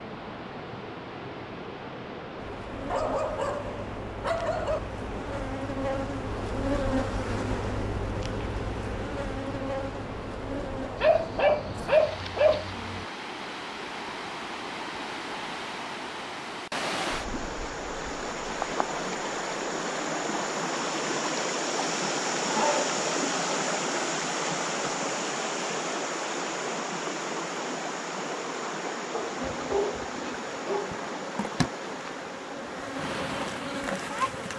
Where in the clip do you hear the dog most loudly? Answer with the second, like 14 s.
12 s.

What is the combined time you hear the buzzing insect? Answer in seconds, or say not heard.
16 s.